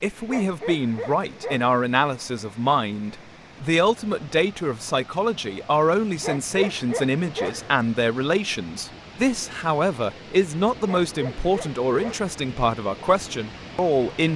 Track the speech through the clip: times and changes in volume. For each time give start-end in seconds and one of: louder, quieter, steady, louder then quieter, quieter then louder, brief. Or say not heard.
0.0-14.3 steady.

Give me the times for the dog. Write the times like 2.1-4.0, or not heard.
0.2-1.8, 6.2-7.7, 10.8-12.3.